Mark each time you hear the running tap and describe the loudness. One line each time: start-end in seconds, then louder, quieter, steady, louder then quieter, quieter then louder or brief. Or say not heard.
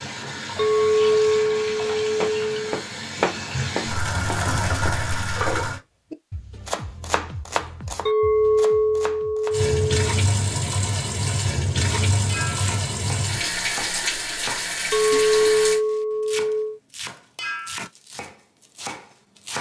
0.0-5.8 louder
9.5-15.8 steady.